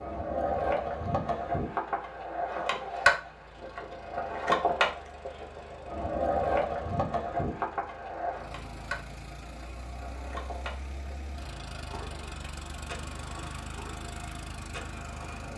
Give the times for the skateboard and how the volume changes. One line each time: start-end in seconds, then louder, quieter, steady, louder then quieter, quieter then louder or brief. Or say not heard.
0.0-15.5 quieter.